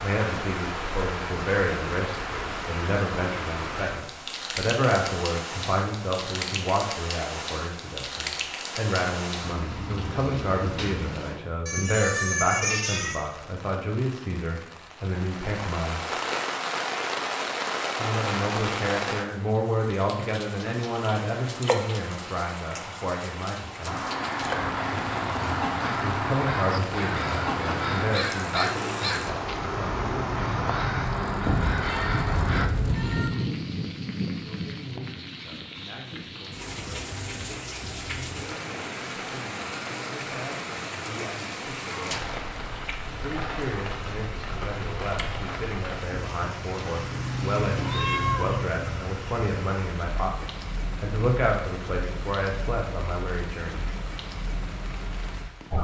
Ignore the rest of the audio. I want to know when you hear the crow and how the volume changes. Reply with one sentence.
The crow can be heard from 23.9 to 32.7 s, at a steady volume.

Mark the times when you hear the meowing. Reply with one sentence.
You can hear the meowing from 11.7 to 13.2 s, from 31.4 to 33.3 s and from 47.8 to 48.5 s.